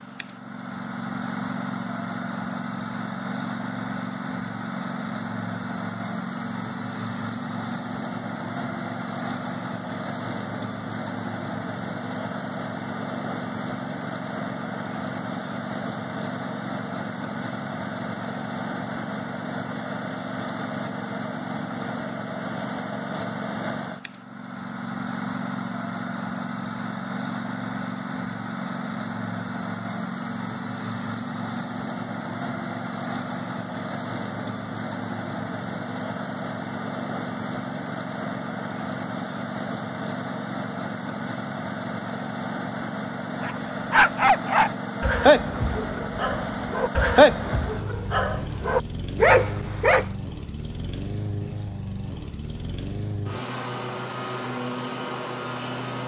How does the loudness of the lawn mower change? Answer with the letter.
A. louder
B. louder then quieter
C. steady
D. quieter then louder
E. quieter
C.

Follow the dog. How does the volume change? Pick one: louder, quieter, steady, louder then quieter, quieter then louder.
quieter then louder.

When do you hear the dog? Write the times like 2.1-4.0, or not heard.
43.4-50.1.